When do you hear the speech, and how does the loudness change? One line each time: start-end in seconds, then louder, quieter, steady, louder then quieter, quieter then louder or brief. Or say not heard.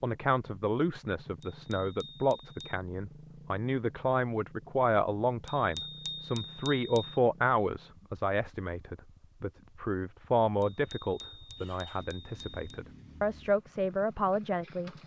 0.0-14.9 steady.